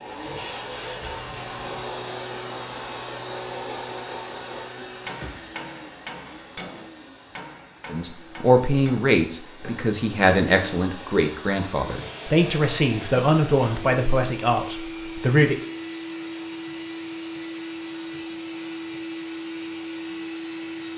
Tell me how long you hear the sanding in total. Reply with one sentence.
You can hear the sanding for 2 seconds altogether.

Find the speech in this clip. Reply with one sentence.
The speech can be heard from 7.9 to 15.7 s.